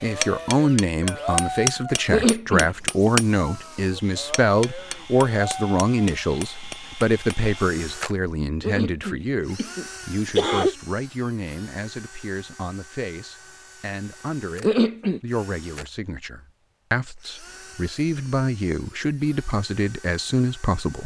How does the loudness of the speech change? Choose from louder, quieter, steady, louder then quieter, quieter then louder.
quieter then louder.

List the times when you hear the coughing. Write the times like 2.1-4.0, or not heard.
2.1-3.1, 8.6-10.8, 14.6-15.2.